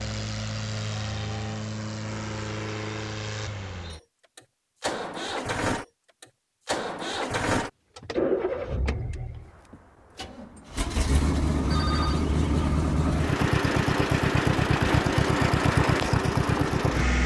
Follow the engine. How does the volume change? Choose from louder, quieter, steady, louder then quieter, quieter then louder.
louder.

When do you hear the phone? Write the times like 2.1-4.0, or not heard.
2.0-3.0, 11.7-12.2.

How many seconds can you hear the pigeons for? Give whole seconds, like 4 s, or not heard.
2 s.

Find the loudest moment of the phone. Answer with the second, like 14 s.
12 s.